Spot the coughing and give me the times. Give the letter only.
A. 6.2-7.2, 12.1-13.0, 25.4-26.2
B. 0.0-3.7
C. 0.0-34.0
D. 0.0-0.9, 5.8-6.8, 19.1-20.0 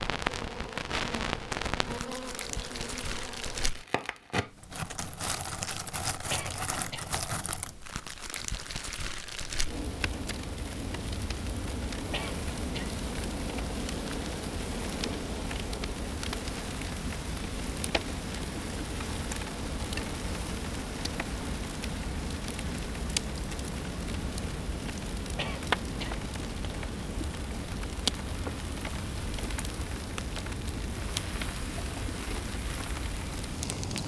A.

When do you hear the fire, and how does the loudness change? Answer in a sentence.
You can hear the fire from 0.0 to 34.0 s, at a steady volume.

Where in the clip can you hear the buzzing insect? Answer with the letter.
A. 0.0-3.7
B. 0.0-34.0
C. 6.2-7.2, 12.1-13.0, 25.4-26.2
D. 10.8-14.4
A.